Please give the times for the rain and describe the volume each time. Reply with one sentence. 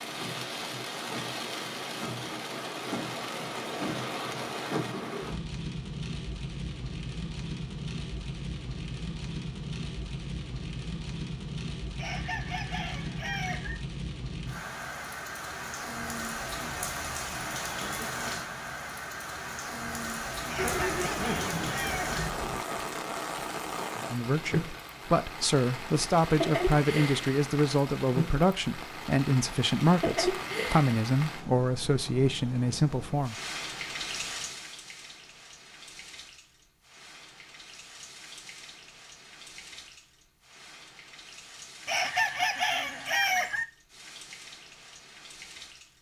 You can hear the rain from 0.0 to 45.9 s, getting quieter.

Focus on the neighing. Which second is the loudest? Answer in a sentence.
The loudest moment of the neighing is at 21 seconds.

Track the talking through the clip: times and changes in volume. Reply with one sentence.
You can hear the talking from 23.9 to 33.4 s, at a steady volume.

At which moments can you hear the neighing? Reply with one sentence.
You can hear the neighing from 20.6 to 22.6 s.